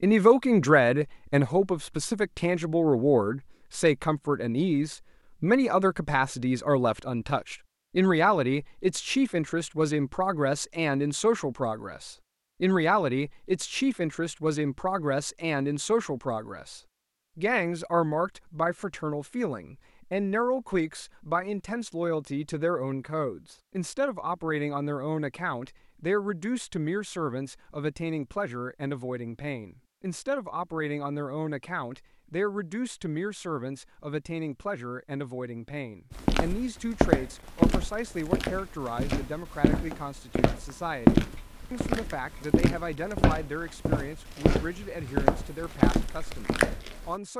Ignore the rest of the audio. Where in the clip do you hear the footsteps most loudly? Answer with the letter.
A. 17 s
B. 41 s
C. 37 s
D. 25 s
B.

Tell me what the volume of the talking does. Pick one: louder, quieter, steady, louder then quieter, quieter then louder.
quieter.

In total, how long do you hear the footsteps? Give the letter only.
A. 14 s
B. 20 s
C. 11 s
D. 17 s
C.